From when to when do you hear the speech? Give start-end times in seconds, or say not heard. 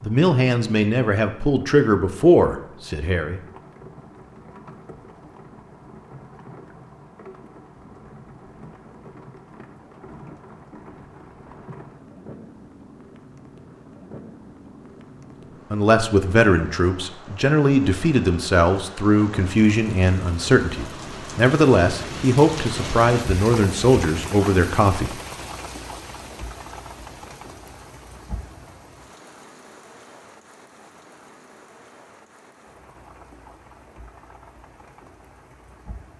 0.0-3.4, 15.7-25.1.